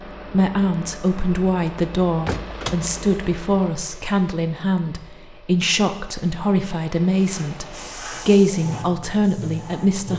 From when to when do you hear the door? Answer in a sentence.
You can hear the door from 1.8 to 2.9 s.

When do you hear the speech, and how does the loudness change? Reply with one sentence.
You can hear the speech from 0.1 to 10.1 s, at a steady volume.